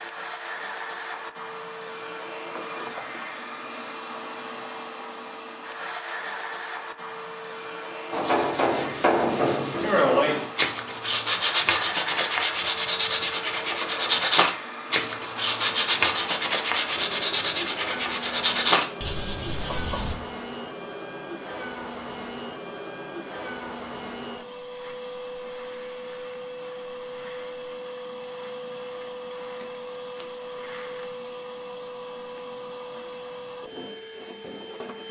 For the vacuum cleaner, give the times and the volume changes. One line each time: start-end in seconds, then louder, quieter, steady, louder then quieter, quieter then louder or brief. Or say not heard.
0.0-35.0 steady.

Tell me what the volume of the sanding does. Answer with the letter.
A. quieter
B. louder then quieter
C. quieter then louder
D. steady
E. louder
D.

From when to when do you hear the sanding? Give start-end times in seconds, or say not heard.
8.1-20.1.